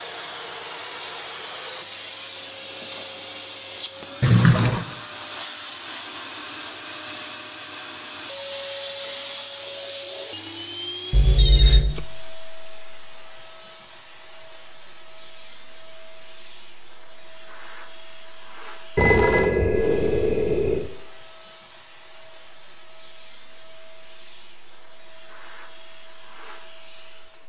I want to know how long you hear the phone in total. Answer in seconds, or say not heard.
3 s.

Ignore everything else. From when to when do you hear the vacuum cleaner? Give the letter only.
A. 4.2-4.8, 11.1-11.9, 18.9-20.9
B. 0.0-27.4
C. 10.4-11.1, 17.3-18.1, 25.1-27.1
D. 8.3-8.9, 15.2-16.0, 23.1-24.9
B.